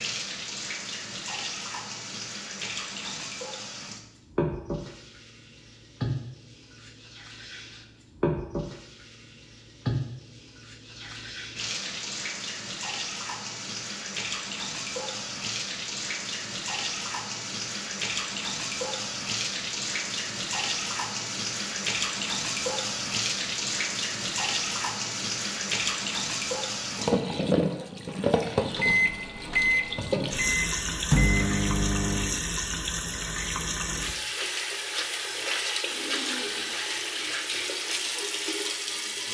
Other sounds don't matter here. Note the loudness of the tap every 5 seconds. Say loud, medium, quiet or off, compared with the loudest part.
medium, medium, medium, loud, loud, loud, loud, loud.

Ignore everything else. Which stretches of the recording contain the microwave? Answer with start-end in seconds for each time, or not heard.
28.8-32.4.